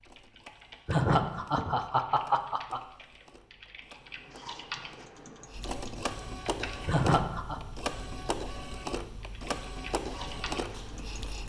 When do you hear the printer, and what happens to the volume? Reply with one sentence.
The printer can be heard from 0.0 to 11.4 s, getting louder.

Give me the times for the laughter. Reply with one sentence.
You can hear the laughter from 0.8 to 2.8 s and from 6.8 to 7.6 s.